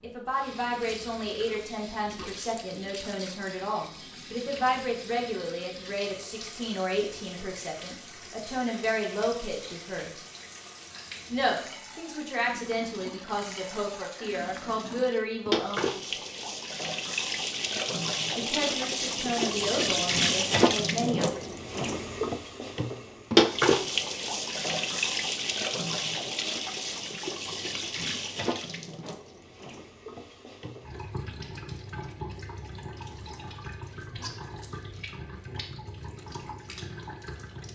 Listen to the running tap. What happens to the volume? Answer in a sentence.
The loudness of the running tap goes up, then down.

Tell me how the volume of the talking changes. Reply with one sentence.
The volume of the talking stays about the same.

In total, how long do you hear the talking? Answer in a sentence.
You can hear the talking for 18 seconds altogether.